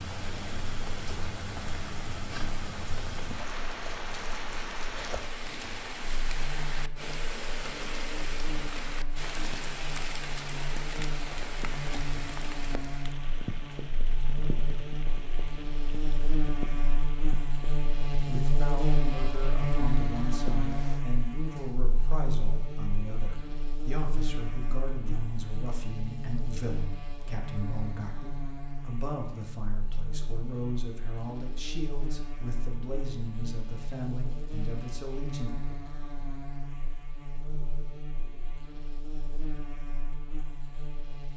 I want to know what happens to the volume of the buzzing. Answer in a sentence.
The loudness of the buzzing goes up, then down.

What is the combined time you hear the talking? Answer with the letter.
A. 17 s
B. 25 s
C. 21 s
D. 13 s
A.